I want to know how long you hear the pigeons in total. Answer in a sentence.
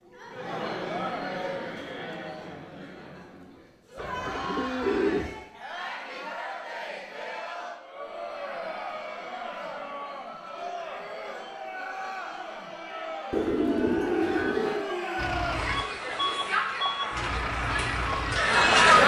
The pigeons can be heard for 3 seconds in total.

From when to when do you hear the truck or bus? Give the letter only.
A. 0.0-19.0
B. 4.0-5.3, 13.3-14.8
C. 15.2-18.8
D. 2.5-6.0
C.